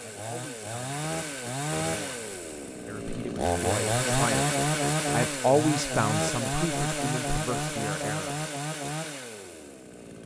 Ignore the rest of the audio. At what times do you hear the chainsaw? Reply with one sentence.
The chainsaw can be heard from 0.0 to 10.2 s.